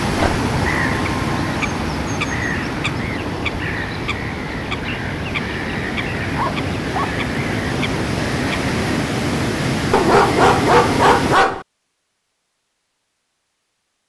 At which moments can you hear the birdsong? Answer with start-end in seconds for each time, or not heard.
0.0-9.1.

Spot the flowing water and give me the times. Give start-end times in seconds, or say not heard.
0.0-11.3.